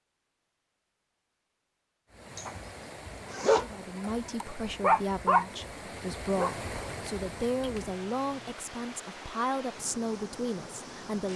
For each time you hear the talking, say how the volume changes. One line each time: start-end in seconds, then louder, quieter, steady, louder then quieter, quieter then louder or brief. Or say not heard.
3.5-11.3 steady.